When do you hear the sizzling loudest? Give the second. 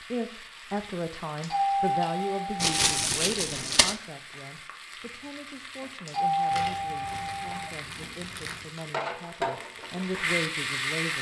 11 s.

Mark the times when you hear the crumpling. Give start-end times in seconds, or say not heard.
2.5-4.0, 6.5-8.8.